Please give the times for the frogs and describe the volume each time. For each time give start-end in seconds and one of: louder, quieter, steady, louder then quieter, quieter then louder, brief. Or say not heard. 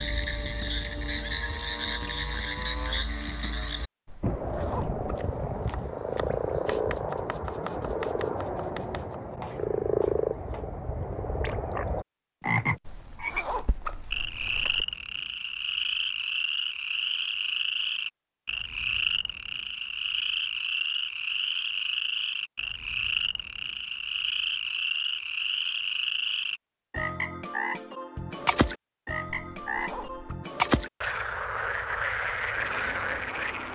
0.0-33.7 steady.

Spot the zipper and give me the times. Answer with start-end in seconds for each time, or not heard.
4.0-5.2, 12.8-14.8, 29.5-30.4.